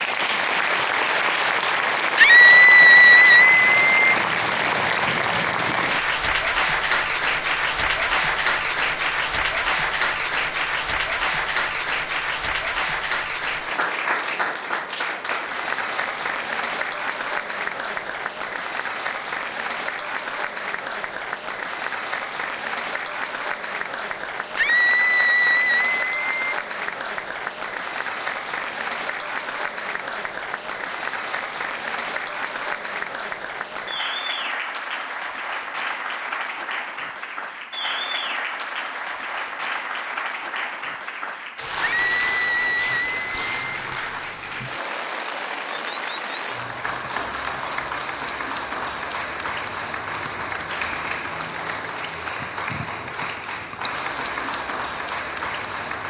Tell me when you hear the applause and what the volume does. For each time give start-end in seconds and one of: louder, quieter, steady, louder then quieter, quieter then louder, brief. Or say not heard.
0.0-56.0 quieter.